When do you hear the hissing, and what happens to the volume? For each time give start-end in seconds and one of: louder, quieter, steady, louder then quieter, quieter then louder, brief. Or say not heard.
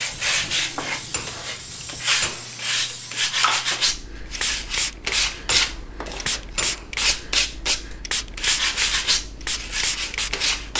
0.0-10.7 louder.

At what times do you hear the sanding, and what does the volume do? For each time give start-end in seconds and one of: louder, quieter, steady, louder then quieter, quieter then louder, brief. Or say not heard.
0.0-10.7 steady.